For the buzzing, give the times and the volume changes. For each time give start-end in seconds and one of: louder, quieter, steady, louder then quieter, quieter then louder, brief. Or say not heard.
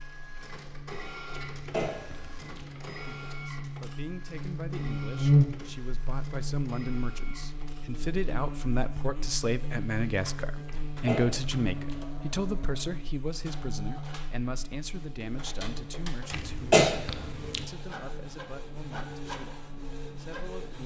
0.0-20.8 louder then quieter.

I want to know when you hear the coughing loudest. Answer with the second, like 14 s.
17 s.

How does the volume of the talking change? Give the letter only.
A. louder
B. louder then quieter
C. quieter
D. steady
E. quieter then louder
B.